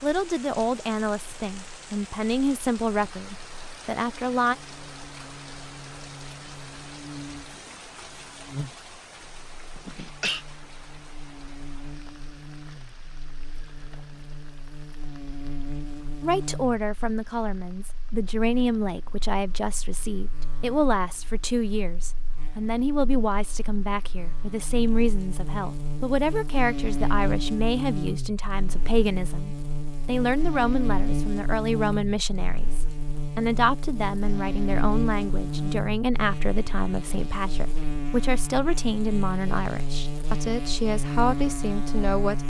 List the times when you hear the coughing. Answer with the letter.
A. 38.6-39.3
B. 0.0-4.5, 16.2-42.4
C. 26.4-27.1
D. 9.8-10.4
D.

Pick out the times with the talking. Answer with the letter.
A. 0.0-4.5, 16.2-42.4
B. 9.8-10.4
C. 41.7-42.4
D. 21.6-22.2
A.